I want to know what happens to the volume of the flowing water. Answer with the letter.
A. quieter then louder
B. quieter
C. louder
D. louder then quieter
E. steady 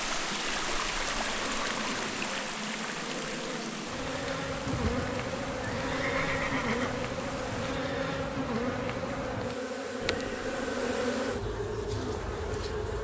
B.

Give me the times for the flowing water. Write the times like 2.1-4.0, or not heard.
0.0-7.8.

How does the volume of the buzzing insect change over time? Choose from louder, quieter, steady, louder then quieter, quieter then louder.
louder.